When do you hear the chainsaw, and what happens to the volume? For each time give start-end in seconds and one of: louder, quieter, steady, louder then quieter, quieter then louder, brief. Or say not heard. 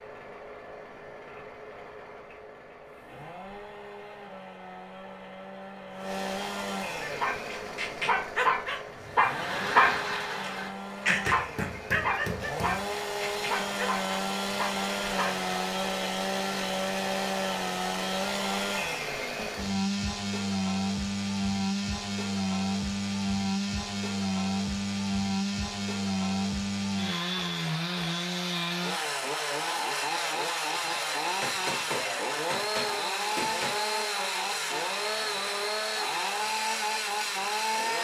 0.0-37.9 louder.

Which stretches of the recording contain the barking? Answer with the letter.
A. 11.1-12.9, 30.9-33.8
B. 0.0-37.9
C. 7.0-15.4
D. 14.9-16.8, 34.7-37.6
C.